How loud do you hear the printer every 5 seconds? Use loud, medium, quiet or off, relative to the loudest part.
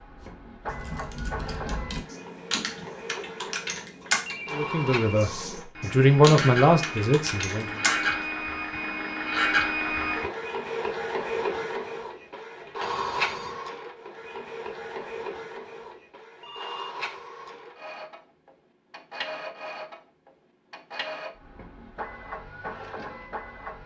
medium, loud, loud, medium, medium.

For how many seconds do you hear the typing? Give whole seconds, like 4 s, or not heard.
8 s.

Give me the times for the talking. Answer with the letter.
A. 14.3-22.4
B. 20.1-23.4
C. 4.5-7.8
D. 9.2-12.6
C.